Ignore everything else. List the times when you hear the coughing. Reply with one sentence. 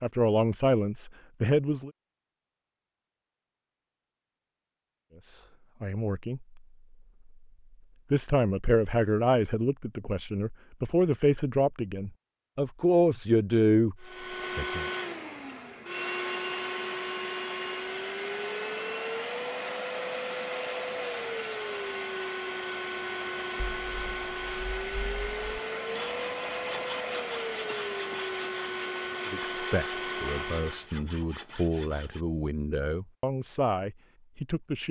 The coughing can't be heard in this clip.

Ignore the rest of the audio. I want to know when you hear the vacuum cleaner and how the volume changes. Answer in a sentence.
The vacuum cleaner can be heard from 14.0 to 30.9 s, at a steady volume.